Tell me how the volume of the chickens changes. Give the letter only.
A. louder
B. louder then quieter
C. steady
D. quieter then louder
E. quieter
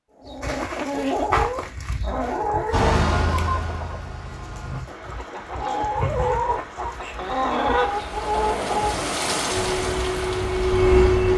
D.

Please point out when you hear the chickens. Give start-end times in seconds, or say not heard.
0.2-9.2.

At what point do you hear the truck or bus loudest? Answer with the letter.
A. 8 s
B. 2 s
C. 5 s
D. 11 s
D.